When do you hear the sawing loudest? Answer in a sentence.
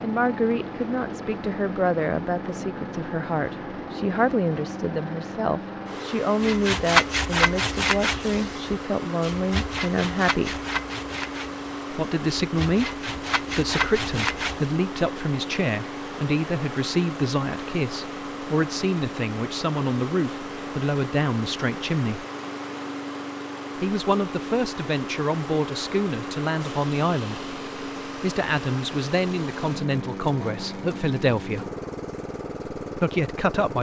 The loudest moment of the sawing is at 7 seconds.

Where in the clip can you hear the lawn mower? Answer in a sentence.
You can hear the lawn mower from 0.0 to 33.7 s.